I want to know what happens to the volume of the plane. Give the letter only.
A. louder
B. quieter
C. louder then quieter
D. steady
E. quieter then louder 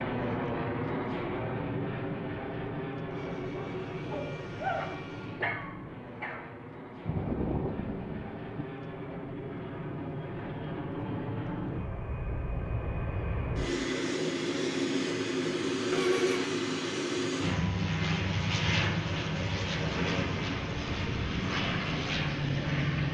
E.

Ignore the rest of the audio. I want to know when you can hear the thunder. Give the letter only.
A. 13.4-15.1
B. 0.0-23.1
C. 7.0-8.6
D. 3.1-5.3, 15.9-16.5
C.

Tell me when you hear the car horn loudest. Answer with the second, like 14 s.
16 s.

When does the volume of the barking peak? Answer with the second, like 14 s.
5 s.